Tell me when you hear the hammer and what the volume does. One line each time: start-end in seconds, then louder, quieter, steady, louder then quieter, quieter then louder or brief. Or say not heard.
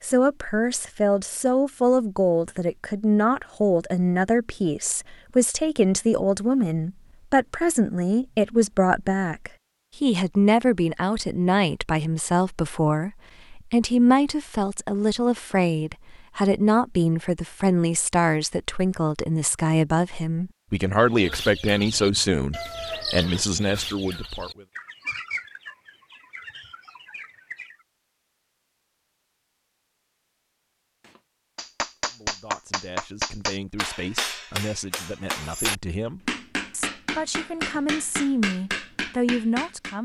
31.1-40.0 steady.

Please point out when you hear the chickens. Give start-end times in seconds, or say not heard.
21.0-27.9.